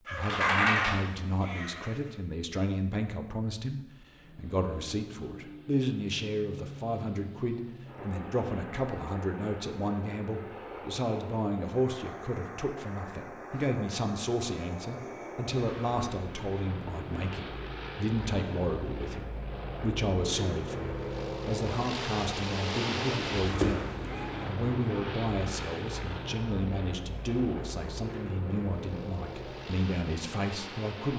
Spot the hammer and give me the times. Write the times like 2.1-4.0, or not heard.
not heard.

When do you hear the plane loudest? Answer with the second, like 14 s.
23 s.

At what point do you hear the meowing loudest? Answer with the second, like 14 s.
1 s.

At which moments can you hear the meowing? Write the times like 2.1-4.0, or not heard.
0.1-1.9, 23.4-24.4.